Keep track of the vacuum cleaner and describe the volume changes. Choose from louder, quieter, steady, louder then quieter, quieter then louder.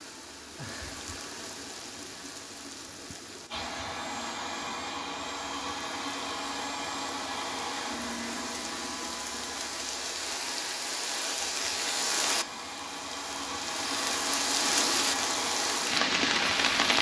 quieter then louder.